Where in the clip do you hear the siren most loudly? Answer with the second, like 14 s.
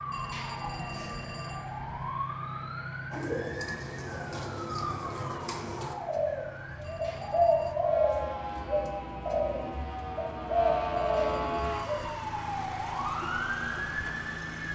11 s.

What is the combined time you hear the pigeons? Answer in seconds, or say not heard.
9 s.